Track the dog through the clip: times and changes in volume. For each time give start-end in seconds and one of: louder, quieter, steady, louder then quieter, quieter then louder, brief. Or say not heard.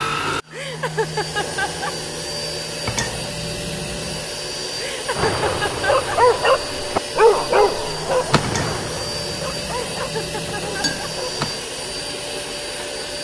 5.2-11.6 quieter.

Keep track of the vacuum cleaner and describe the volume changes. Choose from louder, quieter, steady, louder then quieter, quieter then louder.
steady.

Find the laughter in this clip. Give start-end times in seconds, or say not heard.
0.5-1.9, 4.8-6.2, 9.8-11.1.